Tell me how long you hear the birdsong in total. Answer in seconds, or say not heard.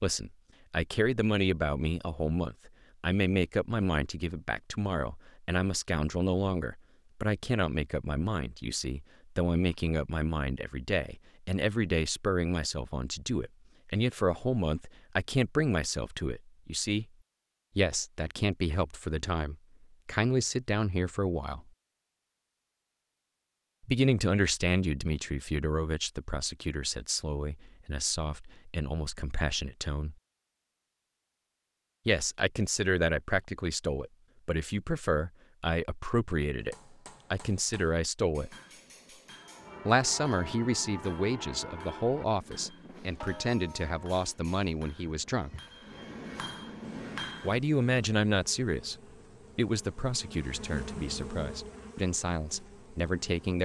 not heard.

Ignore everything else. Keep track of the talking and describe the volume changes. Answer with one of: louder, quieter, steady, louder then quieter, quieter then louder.
steady.